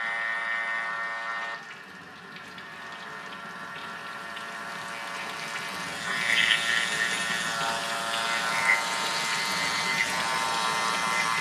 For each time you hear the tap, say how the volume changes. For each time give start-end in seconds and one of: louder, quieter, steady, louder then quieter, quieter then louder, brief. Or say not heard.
0.0-11.3 louder.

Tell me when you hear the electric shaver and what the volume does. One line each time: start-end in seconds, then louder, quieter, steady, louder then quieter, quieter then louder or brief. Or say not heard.
0.0-11.3 quieter then louder.